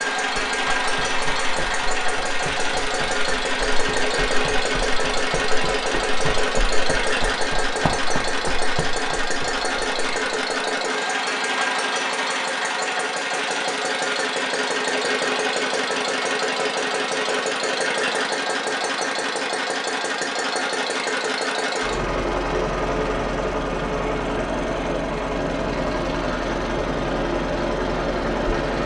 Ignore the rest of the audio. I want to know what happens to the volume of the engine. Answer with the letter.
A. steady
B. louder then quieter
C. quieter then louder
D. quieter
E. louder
A.